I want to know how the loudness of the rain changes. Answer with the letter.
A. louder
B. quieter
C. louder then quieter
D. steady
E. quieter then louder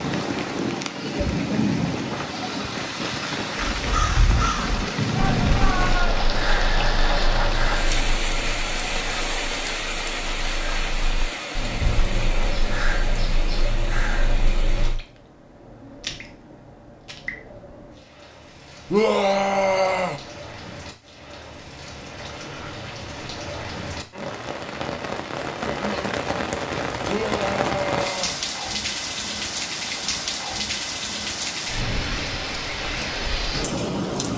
E.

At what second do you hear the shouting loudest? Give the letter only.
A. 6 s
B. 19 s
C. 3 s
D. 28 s
B.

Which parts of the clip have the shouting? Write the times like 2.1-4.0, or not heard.
5.1-6.2, 18.9-20.2, 27.1-28.4.